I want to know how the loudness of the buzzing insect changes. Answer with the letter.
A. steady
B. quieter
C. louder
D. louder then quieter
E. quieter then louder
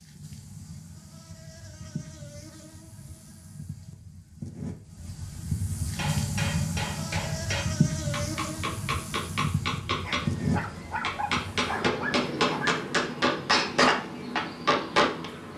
D.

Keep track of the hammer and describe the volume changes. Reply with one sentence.
The loudness of the hammer goes up.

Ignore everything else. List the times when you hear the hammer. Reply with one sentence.
The hammer can be heard from 6.0 to 15.2 s.